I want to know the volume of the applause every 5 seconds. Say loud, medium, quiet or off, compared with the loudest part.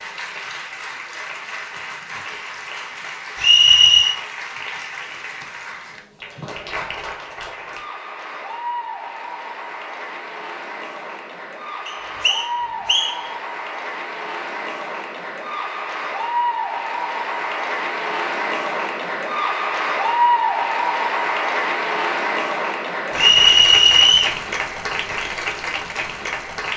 medium, medium, medium, loud, loud, medium.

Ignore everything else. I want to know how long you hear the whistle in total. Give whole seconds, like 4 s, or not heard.
3 s.